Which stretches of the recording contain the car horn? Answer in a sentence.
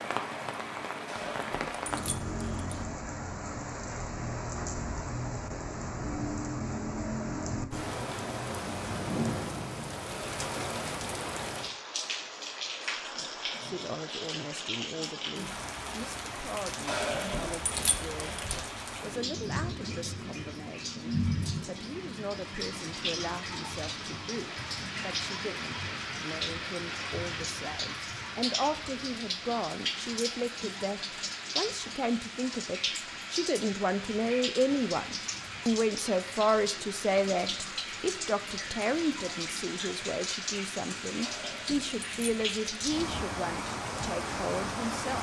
The car horn can't be heard in this clip.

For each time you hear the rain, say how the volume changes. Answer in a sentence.
You can hear the rain from 0.0 to 45.1 s, at a steady volume.